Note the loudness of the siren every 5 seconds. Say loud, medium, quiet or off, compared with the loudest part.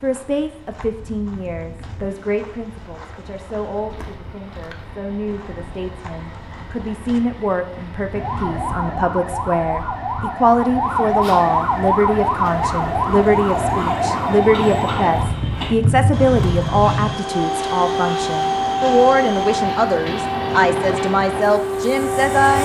off, medium, loud, loud, loud.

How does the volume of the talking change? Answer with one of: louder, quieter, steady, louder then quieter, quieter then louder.
louder.